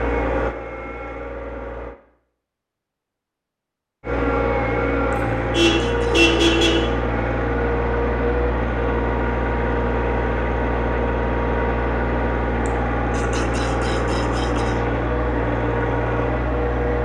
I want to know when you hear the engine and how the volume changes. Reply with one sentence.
You can hear the engine briefly from 0.0 to 1.9 s; and from 4.0 to 17.0 s, at a steady volume.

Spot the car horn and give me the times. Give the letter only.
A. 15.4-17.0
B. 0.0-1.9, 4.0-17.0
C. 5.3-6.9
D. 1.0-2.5
C.